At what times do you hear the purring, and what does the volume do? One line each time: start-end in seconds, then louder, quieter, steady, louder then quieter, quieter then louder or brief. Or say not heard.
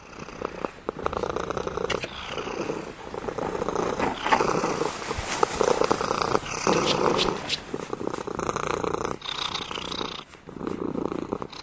0.0-11.5 louder then quieter.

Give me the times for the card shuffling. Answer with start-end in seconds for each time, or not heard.
1.0-2.4, 6.7-7.7.